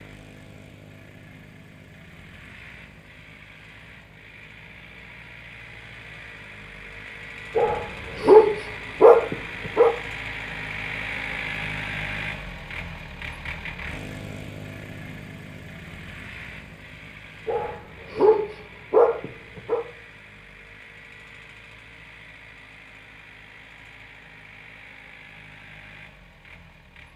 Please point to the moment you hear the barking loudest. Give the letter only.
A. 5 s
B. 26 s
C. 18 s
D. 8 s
D.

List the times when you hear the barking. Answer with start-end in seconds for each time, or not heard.
7.5-9.9, 17.4-19.8.